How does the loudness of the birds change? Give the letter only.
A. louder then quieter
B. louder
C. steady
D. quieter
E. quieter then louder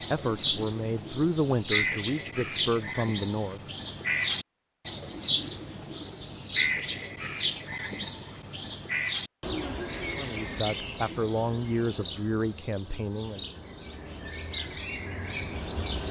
D.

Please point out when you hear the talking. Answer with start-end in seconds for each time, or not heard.
0.1-3.6, 10.2-13.4.